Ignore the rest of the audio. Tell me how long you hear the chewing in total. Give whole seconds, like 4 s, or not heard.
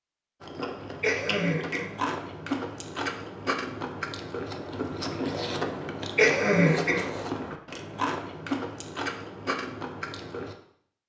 10 s.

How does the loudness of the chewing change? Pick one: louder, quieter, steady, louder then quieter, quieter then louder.
steady.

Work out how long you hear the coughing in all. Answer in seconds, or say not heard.
2 s.